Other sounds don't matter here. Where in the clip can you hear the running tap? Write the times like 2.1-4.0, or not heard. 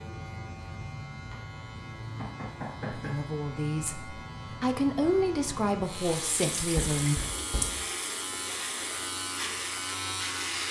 5.8-10.6.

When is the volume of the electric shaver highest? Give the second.
10 s.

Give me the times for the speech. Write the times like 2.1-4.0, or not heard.
2.9-7.2.